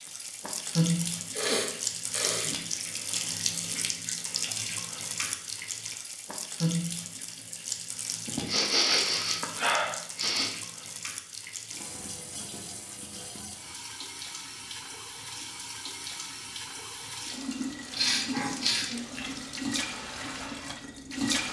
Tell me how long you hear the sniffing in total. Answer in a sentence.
You can hear the sniffing for 5 seconds altogether.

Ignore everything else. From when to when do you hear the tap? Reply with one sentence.
You can hear the tap from 0.0 to 21.4 s.